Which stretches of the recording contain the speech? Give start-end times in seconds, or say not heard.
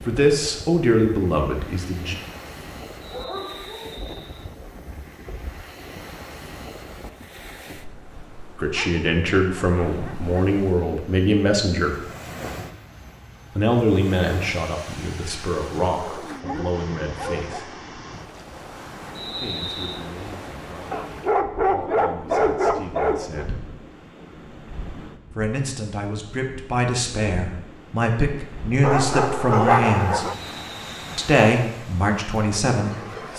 0.1-2.1, 8.6-12.0, 13.6-17.8, 19.4-23.6, 25.4-30.2, 31.1-33.3.